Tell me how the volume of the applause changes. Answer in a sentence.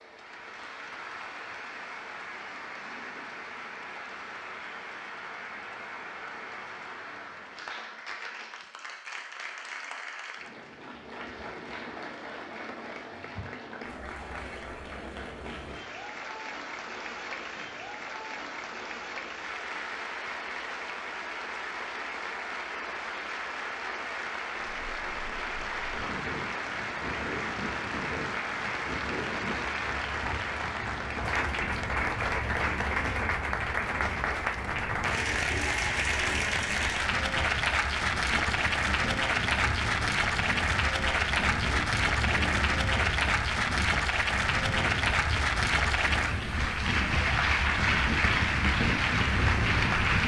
The volume of the applause goes up.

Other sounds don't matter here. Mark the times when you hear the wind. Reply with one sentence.
You can hear the wind from 24.6 to 50.2 s.